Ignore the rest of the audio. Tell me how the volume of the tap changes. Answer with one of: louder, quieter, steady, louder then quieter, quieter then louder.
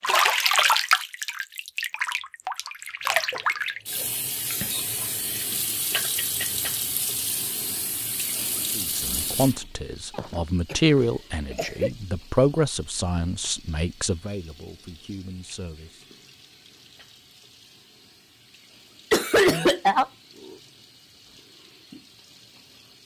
quieter.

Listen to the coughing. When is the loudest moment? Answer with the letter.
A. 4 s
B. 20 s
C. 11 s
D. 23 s
B.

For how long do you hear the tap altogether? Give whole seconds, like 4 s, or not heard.
23 s.